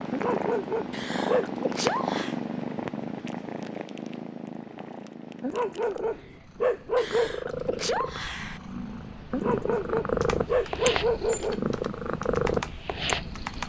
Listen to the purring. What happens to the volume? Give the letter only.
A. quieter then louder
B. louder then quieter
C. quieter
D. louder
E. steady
A.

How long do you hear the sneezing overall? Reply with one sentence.
The sneezing can be heard for 3 seconds in total.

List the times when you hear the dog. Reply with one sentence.
You can hear the dog from 0.1 to 1.6 s, from 5.4 to 7.4 s and from 9.3 to 11.6 s.